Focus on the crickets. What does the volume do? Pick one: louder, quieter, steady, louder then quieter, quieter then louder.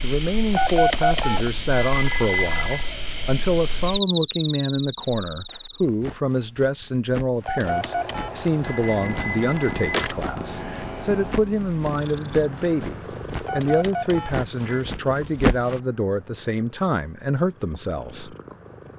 quieter.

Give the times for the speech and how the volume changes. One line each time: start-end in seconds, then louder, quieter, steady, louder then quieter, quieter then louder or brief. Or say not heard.
0.0-18.4 steady.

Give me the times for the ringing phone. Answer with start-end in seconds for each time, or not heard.
0.5-3.0, 7.5-10.2, 13.4-14.8.